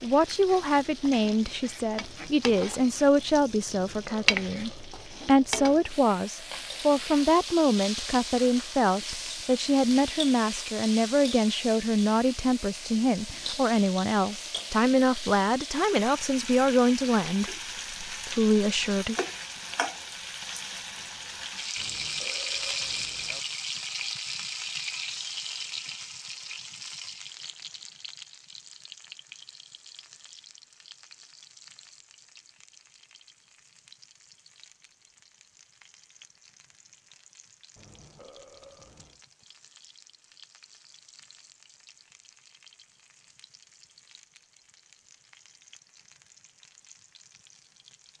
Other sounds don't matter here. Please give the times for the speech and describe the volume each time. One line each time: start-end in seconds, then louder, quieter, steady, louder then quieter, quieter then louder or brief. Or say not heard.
0.0-19.1 steady.